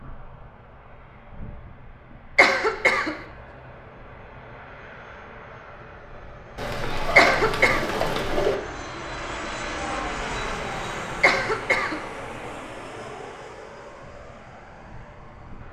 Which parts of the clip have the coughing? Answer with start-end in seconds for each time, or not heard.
2.4-3.2, 7.2-7.8, 11.2-12.1.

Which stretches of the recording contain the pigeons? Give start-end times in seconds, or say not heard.
6.5-8.6.